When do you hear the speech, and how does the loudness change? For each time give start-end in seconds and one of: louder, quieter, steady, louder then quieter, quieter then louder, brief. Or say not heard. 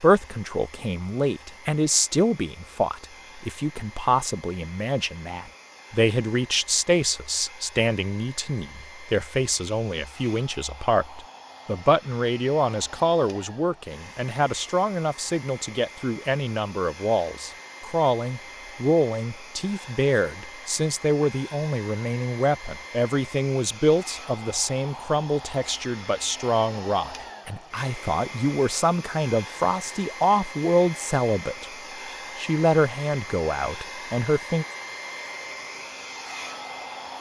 0.0-31.6 steady
32.4-34.6 brief.